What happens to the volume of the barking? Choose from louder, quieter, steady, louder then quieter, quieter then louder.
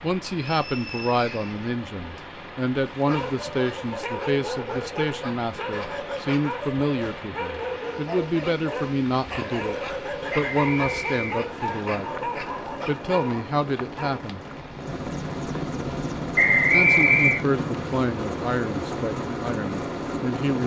steady.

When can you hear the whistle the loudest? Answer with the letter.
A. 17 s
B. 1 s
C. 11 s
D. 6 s
A.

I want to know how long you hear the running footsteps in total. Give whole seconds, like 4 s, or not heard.
not heard.